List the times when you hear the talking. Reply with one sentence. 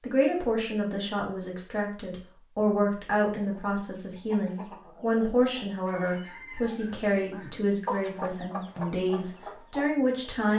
You can hear the talking from 0.0 to 10.5 s.